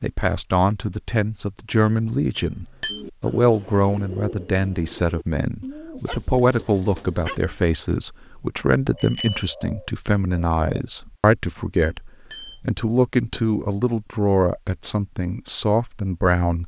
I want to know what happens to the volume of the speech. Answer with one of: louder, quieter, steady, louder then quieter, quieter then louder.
steady.